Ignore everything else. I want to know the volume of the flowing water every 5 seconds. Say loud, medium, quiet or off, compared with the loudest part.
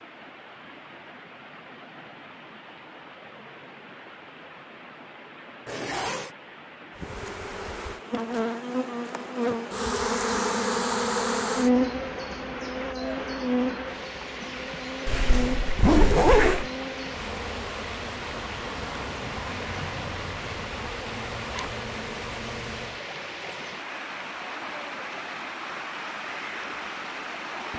medium, medium, loud, loud, loud, loud.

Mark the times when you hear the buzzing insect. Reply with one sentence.
The buzzing insect can be heard from 7.0 to 23.0 s.